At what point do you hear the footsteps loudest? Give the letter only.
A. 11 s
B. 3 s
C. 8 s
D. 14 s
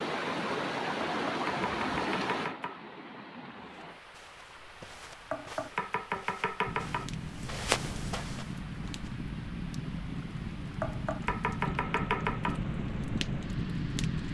C.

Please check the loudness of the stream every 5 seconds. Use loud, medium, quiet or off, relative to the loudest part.
loud, quiet, quiet.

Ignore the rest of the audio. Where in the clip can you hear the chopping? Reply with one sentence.
You can hear the chopping from 1.2 to 2.8 s, from 5.3 to 7.1 s and from 10.8 to 12.6 s.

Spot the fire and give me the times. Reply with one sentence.
The fire can be heard from 6.7 to 14.2 s.